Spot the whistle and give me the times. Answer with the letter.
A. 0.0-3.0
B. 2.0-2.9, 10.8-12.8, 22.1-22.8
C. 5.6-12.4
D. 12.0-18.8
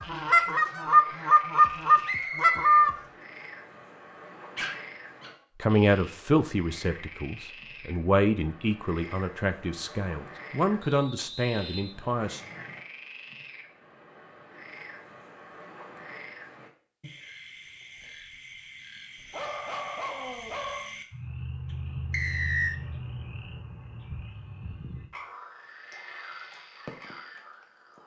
B.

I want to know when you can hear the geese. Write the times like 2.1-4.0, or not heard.
0.0-3.0.